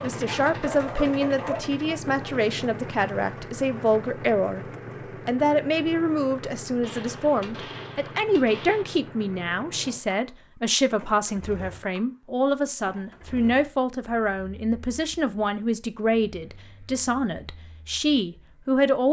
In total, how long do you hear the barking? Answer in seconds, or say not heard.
2 s.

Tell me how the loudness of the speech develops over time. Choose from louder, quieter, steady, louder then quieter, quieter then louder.
steady.